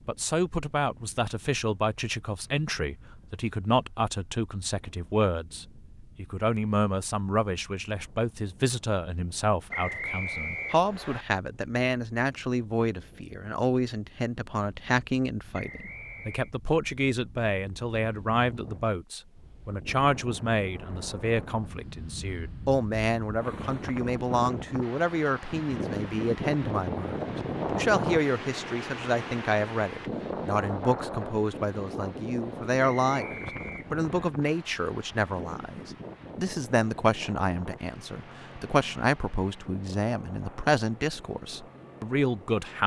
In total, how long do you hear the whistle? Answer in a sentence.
The whistle can be heard for 4 seconds in total.